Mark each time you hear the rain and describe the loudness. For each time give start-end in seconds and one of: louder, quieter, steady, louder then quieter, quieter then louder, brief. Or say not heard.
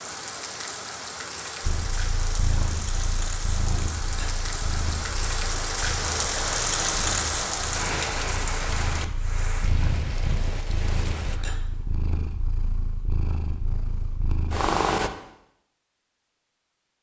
0.0-11.4 louder then quieter.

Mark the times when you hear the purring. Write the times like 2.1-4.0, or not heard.
1.6-15.1.